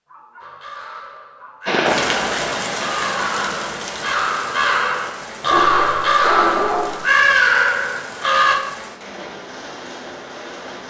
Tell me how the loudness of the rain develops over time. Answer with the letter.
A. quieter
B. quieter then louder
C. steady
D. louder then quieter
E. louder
A.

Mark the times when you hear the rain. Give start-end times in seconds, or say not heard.
1.6-10.8.